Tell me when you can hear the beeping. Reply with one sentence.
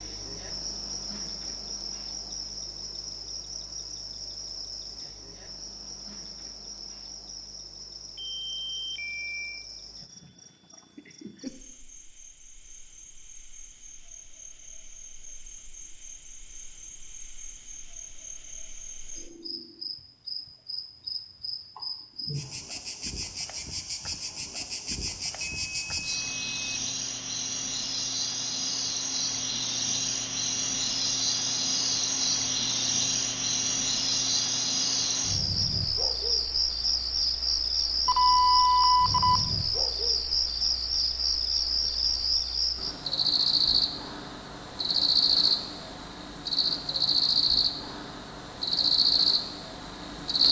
You can hear the beeping from 8.2 to 9.7 s, from 25.4 to 26.6 s and from 38.0 to 39.4 s.